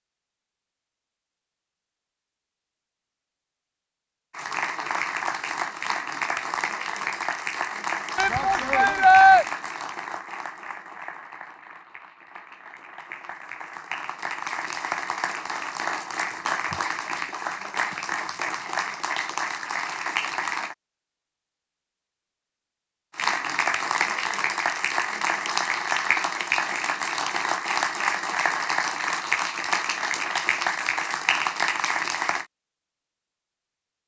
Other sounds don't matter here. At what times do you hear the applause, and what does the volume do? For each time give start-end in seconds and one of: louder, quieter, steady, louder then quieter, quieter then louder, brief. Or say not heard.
4.3-20.8 quieter then louder
23.1-32.5 steady.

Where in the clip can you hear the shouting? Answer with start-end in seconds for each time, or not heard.
8.2-9.4.